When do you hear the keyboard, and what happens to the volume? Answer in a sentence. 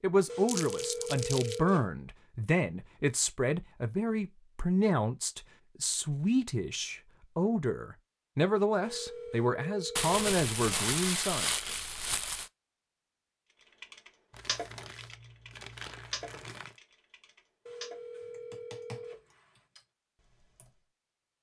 You can hear the keyboard from 13.8 to 20.8 s, getting quieter.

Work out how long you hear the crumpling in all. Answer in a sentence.
The crumpling can be heard for 6 seconds in total.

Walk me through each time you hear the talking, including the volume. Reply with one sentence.
You can hear the talking from 0.0 to 11.5 s, at a steady volume.